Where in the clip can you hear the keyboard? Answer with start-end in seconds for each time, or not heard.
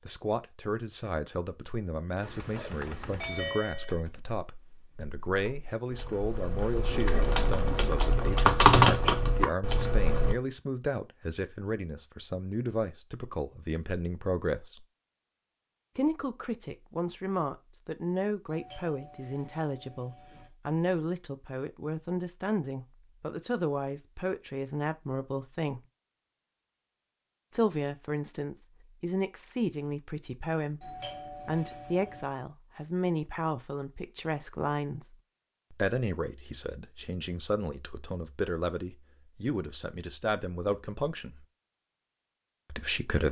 2.2-10.3.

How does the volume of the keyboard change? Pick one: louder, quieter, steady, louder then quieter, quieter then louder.
quieter then louder.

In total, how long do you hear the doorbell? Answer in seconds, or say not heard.
5 s.